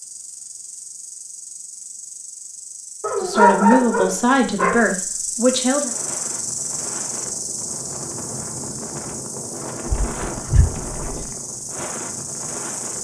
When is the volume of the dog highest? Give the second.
4 s.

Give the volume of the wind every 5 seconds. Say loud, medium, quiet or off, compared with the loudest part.
off, loud, loud.